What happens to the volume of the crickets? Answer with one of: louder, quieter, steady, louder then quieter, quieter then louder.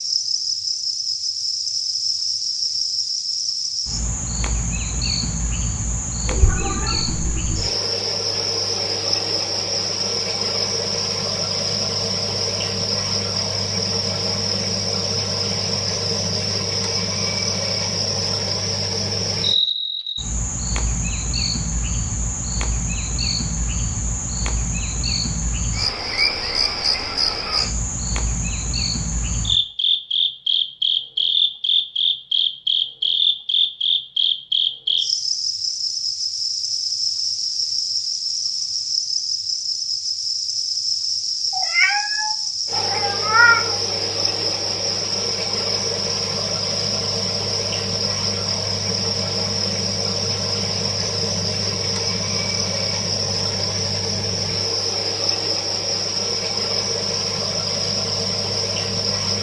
steady.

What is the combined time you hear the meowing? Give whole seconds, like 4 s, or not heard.
4 s.